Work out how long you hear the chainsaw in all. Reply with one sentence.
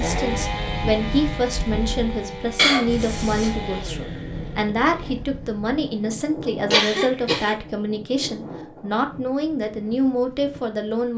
The chainsaw can be heard for 5 seconds in total.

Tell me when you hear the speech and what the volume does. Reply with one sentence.
The speech can be heard from 0.0 to 11.1 s, at a steady volume.